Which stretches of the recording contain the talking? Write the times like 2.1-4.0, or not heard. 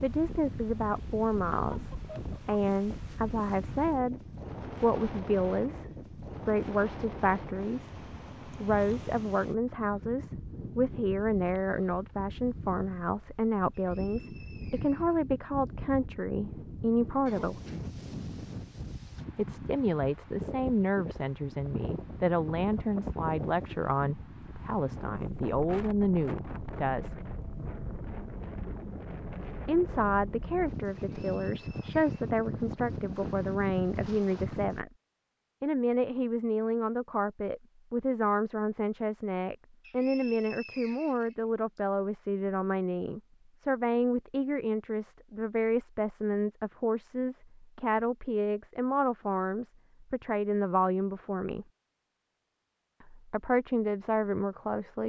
0.0-4.2, 4.8-17.6, 19.4-27.2, 29.6-34.9, 35.6-51.6, 53.0-55.0.